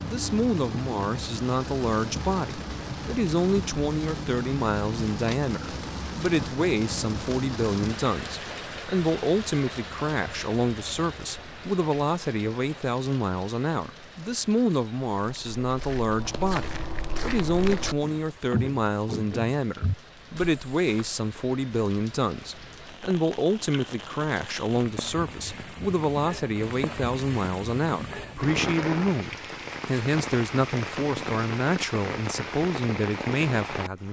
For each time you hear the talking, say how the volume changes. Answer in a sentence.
You can hear the talking from 0.0 to 34.0 s, at a steady volume.